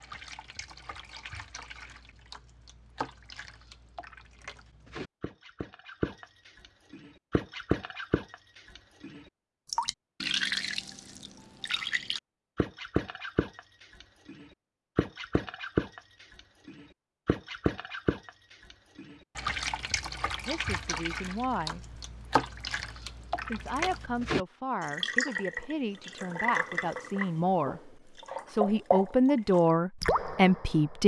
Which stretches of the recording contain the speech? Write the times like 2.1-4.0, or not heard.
20.4-22.0, 23.5-31.0.